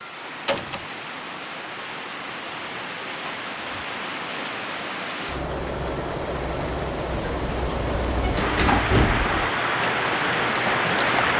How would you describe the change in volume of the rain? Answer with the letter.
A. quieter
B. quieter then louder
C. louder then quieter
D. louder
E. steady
D.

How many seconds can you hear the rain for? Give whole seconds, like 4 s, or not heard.
11 s.